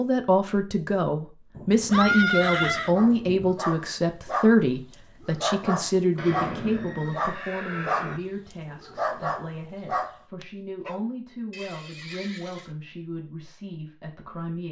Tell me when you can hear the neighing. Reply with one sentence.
The neighing can be heard from 1.8 to 3.0 s, from 6.2 to 8.2 s and from 11.5 to 12.7 s.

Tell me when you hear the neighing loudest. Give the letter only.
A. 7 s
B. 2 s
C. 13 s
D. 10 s
B.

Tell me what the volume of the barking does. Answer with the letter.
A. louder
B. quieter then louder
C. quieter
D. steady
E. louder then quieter
D.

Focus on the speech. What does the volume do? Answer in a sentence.
The loudness of the speech goes down.